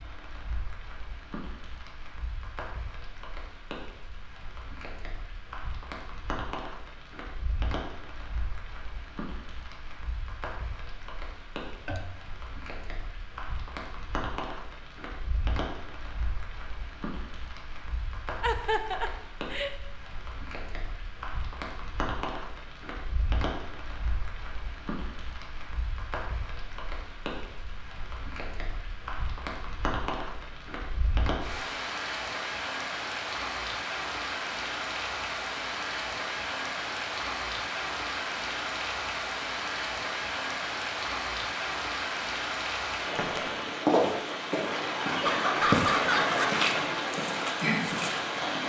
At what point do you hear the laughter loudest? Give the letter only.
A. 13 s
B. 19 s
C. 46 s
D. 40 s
C.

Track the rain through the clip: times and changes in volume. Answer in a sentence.
The rain can be heard from 0.0 to 48.6 s, getting louder.